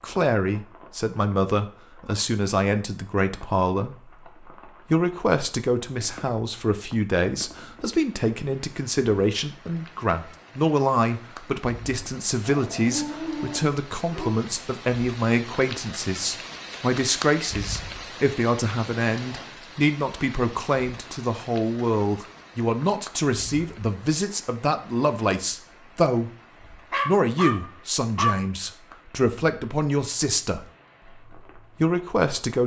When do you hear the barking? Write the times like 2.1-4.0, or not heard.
12.4-14.3, 26.9-28.4.